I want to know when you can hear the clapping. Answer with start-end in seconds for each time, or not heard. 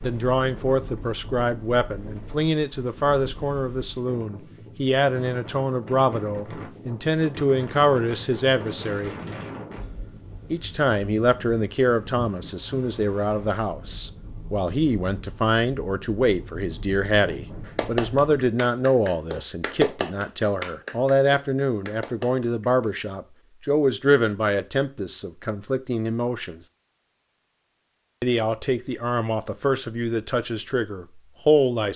17.6-22.9.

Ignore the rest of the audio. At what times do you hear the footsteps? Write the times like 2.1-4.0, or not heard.
not heard.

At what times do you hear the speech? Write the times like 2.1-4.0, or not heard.
0.0-9.2, 10.5-26.6, 28.2-31.9.